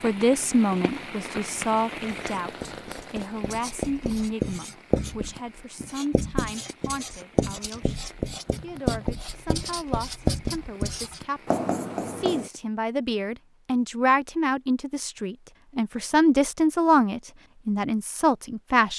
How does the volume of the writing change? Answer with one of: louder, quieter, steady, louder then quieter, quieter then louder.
louder.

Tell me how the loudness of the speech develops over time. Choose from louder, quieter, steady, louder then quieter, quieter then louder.
quieter then louder.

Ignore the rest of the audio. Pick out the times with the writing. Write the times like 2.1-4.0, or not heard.
2.0-12.5.